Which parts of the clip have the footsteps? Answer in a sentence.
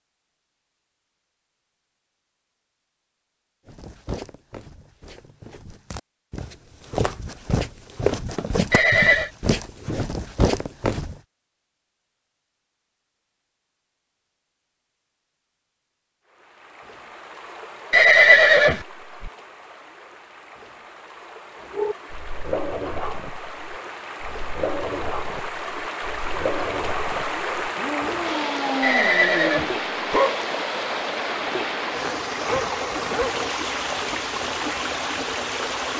The footsteps can be heard from 3.6 to 11.2 s.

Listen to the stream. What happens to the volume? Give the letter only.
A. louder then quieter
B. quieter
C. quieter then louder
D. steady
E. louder
E.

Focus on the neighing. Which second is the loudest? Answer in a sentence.
The volume of the neighing peaks at 18 seconds.